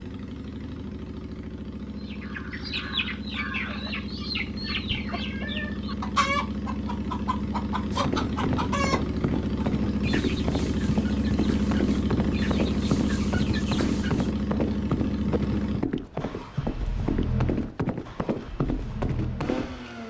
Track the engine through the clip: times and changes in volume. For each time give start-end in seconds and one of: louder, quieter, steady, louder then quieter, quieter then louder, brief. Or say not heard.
0.0-20.0 louder then quieter.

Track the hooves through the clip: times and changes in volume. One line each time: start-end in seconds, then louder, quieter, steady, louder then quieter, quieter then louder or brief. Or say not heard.
8.0-19.7 steady.